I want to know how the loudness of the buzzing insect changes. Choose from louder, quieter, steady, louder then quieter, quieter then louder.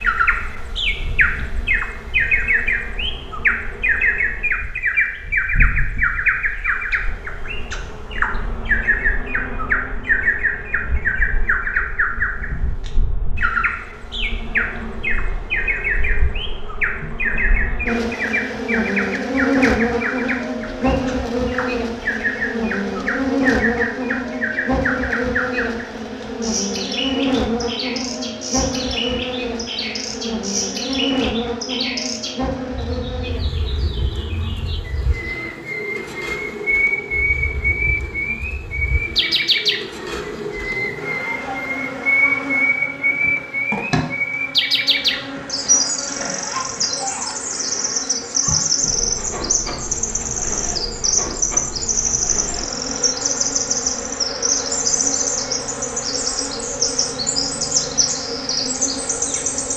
louder then quieter.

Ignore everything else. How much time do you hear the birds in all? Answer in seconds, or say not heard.
60 s.